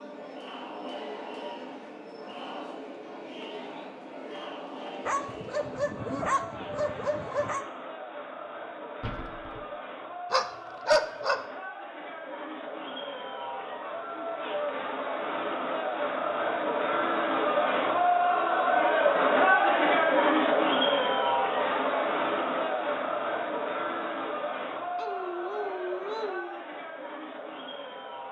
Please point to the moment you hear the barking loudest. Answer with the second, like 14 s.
11 s.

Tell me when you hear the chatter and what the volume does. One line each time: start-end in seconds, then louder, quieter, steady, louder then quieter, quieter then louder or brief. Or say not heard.
0.0-28.2 louder then quieter.